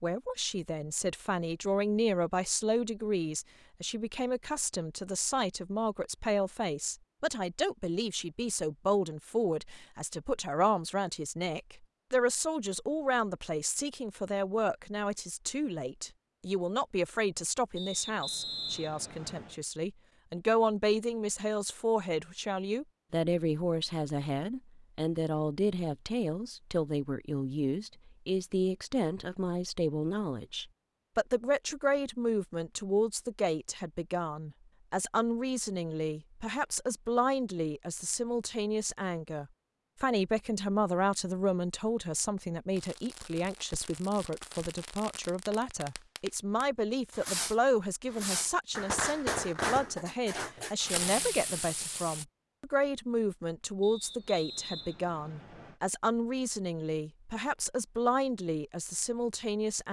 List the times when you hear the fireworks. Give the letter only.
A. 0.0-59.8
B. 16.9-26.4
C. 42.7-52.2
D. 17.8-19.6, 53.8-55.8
C.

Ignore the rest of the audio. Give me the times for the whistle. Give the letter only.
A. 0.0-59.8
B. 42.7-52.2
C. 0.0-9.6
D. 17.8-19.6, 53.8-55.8
D.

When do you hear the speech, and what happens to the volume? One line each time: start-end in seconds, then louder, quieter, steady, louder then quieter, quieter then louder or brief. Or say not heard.
0.0-59.8 steady.